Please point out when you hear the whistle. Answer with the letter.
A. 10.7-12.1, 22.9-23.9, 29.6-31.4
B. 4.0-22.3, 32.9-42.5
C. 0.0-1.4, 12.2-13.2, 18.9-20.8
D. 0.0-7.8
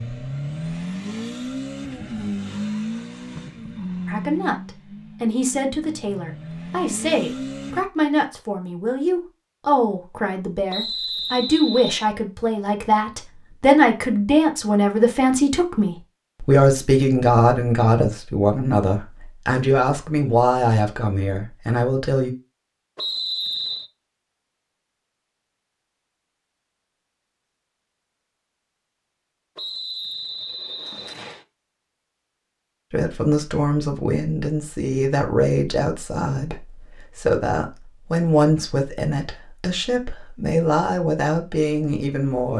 A.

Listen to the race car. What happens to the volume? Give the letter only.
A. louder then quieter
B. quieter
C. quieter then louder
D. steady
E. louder
C.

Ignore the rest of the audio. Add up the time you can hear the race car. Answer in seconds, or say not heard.
8 s.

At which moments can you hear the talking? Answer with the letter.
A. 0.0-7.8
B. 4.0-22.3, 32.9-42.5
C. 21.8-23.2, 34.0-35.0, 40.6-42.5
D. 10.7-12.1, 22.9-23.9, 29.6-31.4
B.